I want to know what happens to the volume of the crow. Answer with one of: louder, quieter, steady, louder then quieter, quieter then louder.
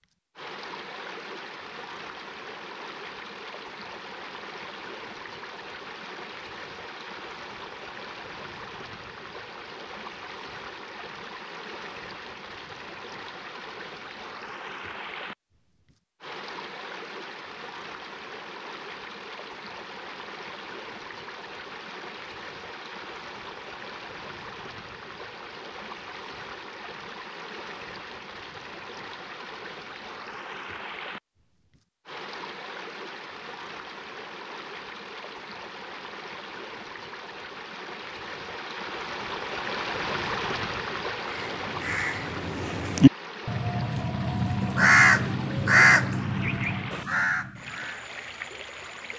louder then quieter.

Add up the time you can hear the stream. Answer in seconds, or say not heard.
49 s.